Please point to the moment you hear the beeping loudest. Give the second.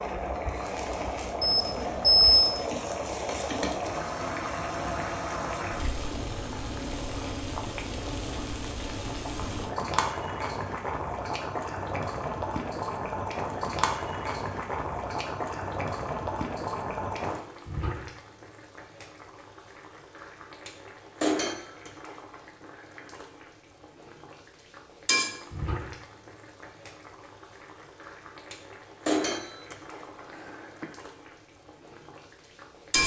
2 s.